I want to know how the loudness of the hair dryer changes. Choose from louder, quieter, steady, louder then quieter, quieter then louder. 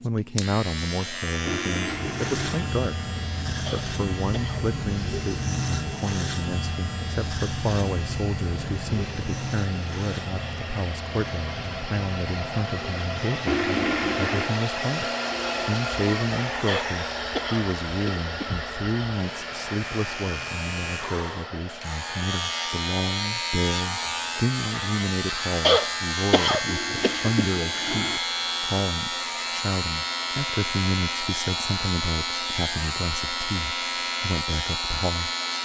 louder then quieter.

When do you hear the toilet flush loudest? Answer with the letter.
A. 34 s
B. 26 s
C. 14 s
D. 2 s
C.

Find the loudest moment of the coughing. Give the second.
26 s.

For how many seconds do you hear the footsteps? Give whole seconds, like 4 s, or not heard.
not heard.